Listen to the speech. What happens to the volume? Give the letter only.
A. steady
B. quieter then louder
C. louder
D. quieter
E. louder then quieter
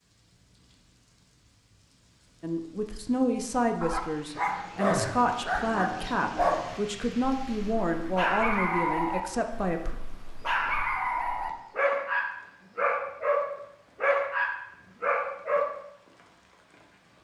A.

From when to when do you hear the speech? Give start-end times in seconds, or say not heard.
2.4-9.9.